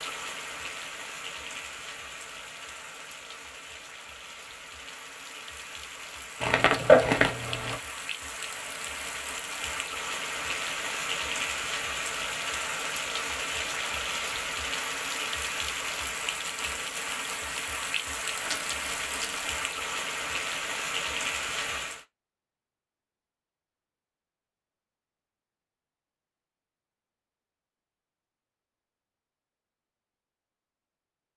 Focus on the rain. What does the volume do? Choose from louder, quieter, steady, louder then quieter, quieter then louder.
louder.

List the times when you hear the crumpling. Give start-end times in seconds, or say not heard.
6.4-7.8, 18.4-19.5.